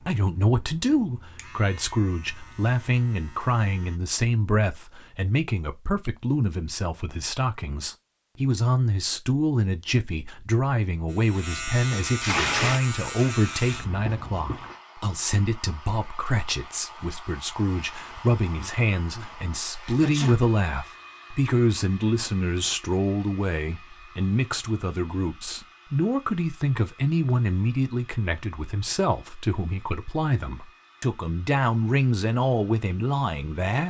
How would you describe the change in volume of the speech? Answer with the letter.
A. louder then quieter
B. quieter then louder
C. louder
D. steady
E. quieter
D.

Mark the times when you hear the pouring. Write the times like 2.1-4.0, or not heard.
11.9-12.8.